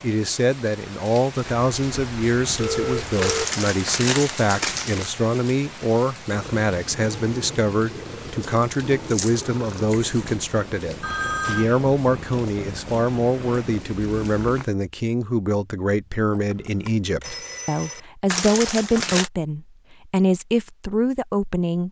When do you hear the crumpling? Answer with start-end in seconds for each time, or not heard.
3.2-5.1, 8.4-10.3, 18.3-19.3.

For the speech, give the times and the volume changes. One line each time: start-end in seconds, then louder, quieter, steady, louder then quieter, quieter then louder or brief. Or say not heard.
0.0-21.8 steady.